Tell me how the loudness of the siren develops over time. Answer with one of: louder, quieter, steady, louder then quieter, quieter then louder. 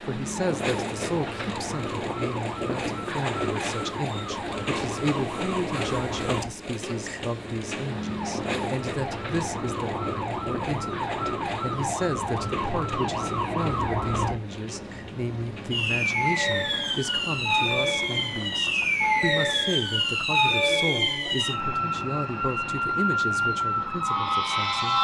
louder.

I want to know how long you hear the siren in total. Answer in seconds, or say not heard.
25 s.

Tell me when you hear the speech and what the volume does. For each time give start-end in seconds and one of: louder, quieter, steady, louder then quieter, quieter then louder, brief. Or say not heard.
0.0-25.0 steady.